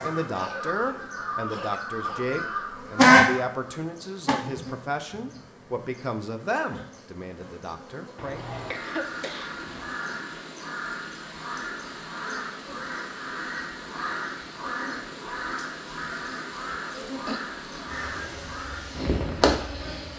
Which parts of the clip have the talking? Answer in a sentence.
The talking can be heard from 0.0 to 8.4 s.